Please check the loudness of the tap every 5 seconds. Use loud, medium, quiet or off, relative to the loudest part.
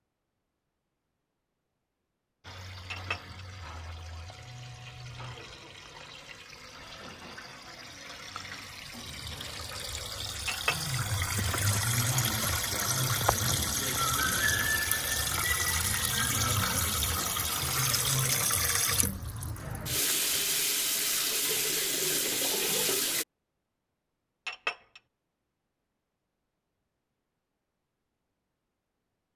quiet, quiet, loud, loud, loud, off.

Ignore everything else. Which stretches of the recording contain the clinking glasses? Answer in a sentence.
The clinking glasses can be heard from 2.9 to 3.4 s, from 10.4 to 11.0 s and from 24.4 to 25.0 s.